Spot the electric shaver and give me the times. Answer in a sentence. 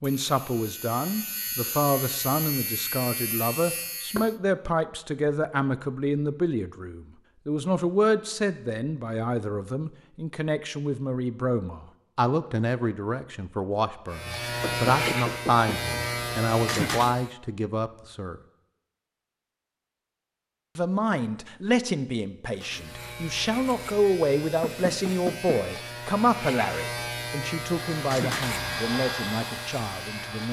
You can hear the electric shaver from 0.0 to 4.3 s, from 14.1 to 17.3 s and from 22.5 to 30.4 s.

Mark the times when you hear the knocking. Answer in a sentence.
The knocking can be heard from 14.6 to 15.9 s and from 24.6 to 25.6 s.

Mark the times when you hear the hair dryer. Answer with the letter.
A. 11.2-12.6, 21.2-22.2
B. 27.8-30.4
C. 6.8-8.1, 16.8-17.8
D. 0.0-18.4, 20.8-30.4
B.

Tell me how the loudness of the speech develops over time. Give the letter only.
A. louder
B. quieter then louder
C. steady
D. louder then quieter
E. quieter
C.